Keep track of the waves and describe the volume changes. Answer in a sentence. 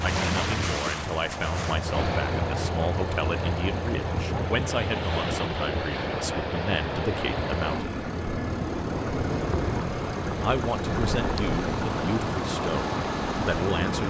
The loudness of the waves stays about the same.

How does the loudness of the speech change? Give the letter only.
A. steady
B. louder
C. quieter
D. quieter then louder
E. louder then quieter
A.